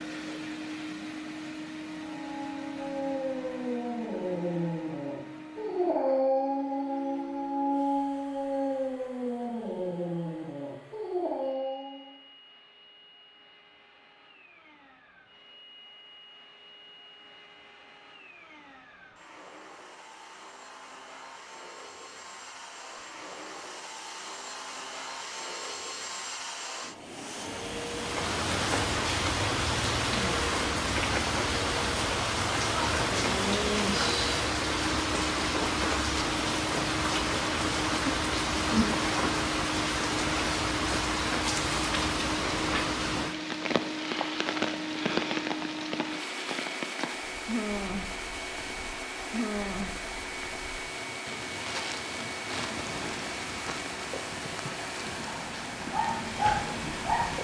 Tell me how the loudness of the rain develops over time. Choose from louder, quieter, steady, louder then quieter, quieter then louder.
quieter.